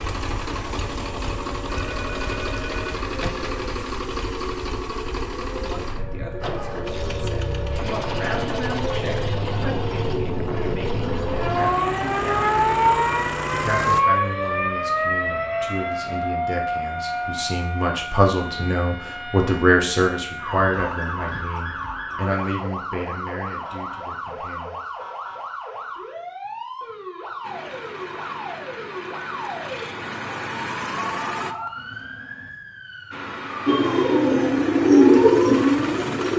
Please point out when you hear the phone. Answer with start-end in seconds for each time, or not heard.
1.7-3.6, 30.9-32.5.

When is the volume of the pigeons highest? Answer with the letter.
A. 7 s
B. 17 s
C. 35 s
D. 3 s
C.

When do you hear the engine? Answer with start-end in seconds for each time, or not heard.
0.0-14.0, 27.4-31.6, 33.1-36.3.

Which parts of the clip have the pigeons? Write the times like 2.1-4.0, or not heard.
33.6-36.3.